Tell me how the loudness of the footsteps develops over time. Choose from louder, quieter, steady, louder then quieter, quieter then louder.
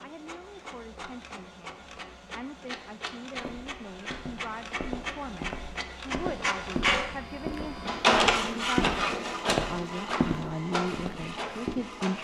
louder.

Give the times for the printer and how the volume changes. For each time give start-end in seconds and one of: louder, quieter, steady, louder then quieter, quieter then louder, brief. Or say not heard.
0.0-12.1 louder then quieter.